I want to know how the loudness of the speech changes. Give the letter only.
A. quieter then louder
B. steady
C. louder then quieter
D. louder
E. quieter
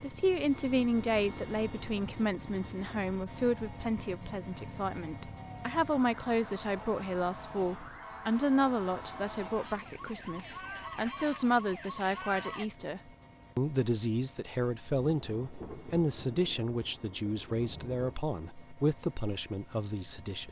B.